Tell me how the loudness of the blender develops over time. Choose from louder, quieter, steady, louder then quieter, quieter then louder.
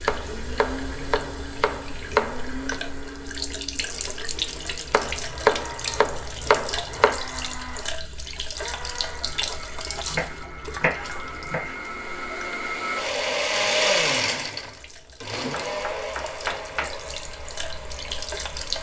louder then quieter.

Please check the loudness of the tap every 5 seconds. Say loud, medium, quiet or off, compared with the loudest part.
loud, loud, medium, loud.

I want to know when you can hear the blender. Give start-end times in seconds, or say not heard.
0.1-18.7.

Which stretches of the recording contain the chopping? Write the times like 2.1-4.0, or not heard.
0.1-2.8, 4.9-7.2, 10.1-11.8, 15.7-17.0.